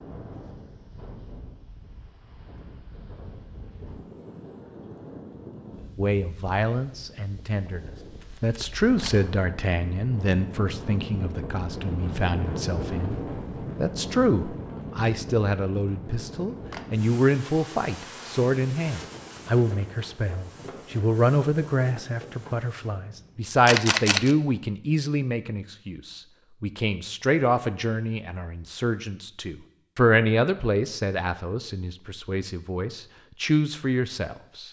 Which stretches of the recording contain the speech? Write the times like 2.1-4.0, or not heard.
6.0-34.6.